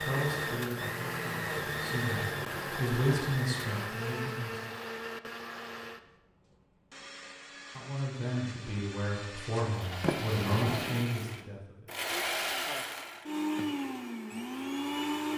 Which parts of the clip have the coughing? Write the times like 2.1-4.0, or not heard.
not heard.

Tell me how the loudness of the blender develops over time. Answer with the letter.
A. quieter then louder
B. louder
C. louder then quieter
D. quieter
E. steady
A.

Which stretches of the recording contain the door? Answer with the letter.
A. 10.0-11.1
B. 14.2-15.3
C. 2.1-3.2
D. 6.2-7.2
A.